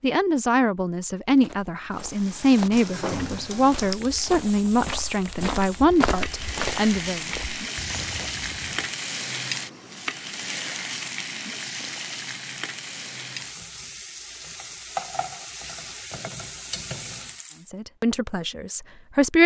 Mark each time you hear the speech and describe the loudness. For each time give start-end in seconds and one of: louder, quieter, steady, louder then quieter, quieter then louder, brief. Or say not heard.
0.0-7.2 steady
17.6-19.4 brief.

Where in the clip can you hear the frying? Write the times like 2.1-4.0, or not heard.
1.9-17.6.